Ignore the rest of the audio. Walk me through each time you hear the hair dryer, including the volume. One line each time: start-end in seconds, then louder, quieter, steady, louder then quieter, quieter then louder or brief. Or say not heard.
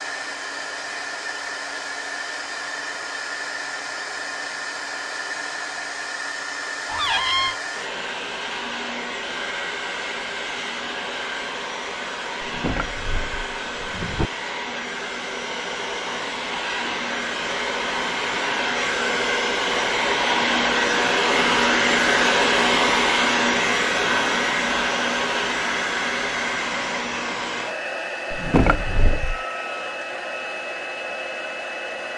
0.0-32.1 louder then quieter.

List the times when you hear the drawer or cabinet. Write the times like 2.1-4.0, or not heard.
6.8-7.5, 12.4-14.3, 28.3-29.4.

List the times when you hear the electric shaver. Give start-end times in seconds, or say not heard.
not heard.